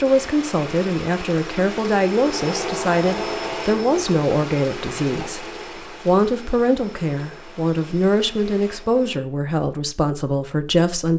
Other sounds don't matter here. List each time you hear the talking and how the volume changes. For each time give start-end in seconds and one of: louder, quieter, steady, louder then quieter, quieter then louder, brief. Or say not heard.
0.0-11.1 steady.